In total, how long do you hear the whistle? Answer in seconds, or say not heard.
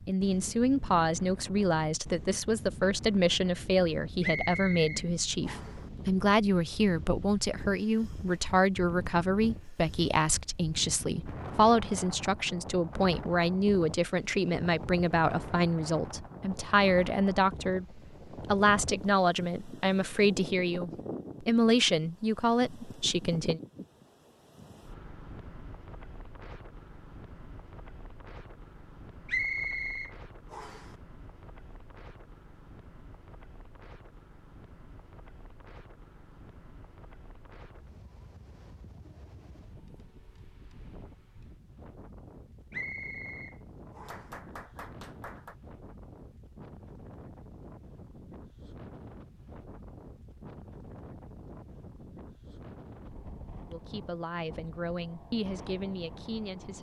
5 s.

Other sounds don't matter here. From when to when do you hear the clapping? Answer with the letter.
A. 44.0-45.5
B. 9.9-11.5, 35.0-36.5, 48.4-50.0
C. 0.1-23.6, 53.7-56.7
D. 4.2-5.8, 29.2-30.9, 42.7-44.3
A.